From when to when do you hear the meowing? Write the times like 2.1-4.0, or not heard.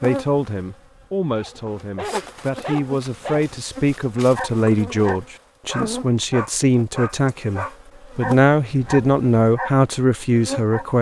not heard.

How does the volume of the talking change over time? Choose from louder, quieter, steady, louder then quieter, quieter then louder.
louder.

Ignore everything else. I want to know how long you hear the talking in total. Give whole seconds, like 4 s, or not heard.
11 s.